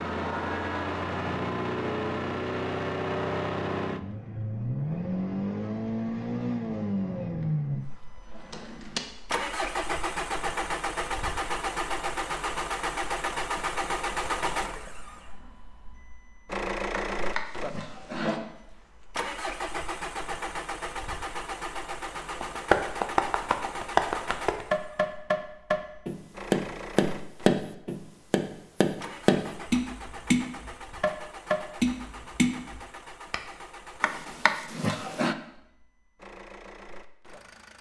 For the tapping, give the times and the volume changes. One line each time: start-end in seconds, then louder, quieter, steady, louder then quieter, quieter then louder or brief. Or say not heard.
22.4-33.4 steady.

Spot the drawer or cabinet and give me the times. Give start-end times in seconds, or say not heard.
8.3-9.0, 17.1-18.4, 34.0-35.4.